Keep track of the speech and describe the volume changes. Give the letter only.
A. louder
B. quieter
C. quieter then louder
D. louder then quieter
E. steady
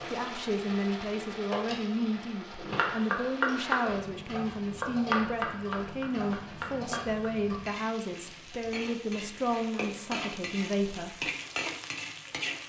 E.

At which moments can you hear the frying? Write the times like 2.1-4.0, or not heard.
0.0-12.6.